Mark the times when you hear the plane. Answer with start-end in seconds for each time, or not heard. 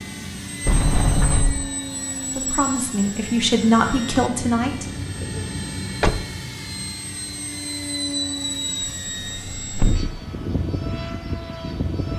0.0-12.1.